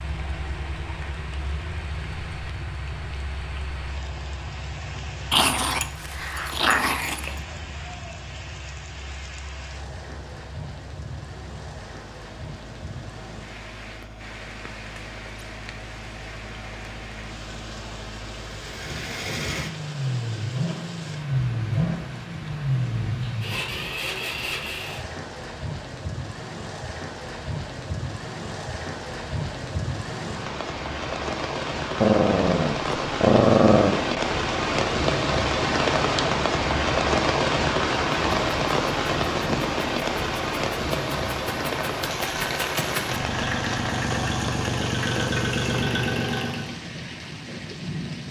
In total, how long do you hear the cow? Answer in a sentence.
The cow can't be heard in this clip.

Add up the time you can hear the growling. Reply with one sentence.
The growling can be heard for 4 seconds in total.